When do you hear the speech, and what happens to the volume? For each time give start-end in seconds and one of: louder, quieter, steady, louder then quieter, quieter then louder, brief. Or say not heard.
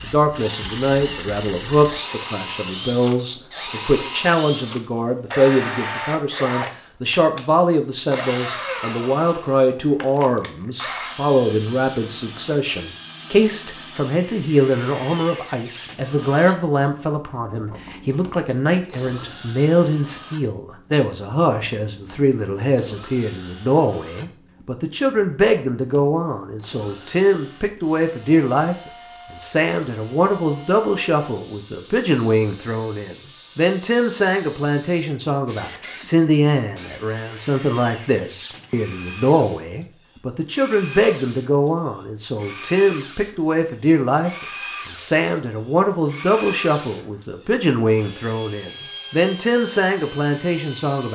0.0-51.1 steady.